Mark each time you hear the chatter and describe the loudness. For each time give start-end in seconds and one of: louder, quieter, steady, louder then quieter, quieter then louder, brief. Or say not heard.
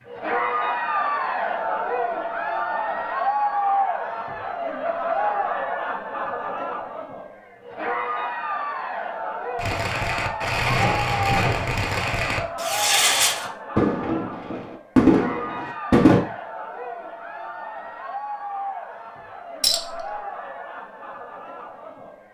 0.1-22.3 quieter.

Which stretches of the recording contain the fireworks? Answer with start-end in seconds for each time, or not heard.
9.6-16.2.